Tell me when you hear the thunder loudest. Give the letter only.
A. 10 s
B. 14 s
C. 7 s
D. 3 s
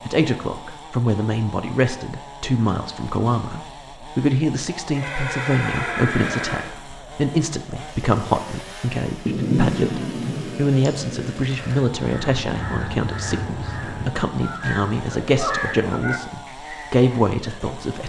A.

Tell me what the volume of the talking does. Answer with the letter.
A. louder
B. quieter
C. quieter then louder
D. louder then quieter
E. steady
E.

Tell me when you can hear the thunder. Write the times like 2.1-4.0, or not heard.
9.2-11.4.